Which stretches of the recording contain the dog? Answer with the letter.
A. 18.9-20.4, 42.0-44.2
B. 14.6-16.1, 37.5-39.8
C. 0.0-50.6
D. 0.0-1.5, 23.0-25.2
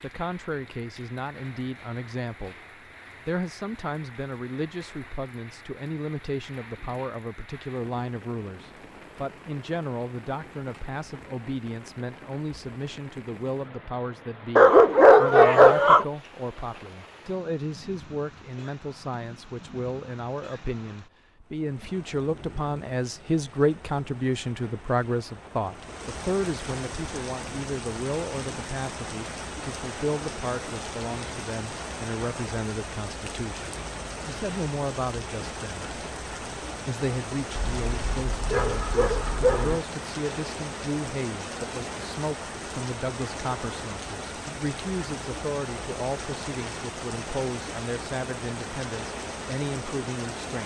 B.